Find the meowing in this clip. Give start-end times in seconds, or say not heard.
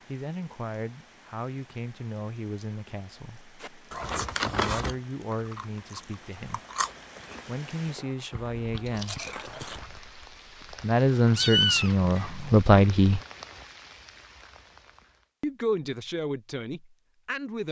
11.3-12.5.